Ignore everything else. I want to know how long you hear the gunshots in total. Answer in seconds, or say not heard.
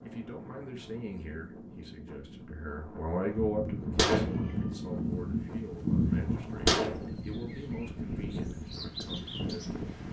4 s.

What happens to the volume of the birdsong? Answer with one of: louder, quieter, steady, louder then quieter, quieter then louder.
quieter then louder.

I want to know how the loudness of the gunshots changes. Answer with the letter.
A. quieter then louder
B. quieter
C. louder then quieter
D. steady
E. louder
A.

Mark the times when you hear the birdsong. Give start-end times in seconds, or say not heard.
4.8-9.8.